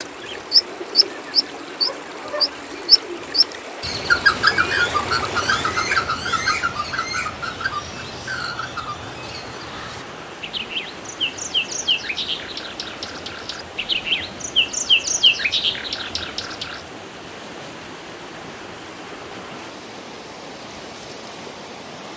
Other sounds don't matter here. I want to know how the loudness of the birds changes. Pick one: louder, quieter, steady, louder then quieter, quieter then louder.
quieter then louder.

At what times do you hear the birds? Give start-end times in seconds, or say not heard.
0.0-16.8.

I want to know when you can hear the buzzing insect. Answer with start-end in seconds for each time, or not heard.
not heard.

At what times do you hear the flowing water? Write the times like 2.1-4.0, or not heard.
0.0-22.1.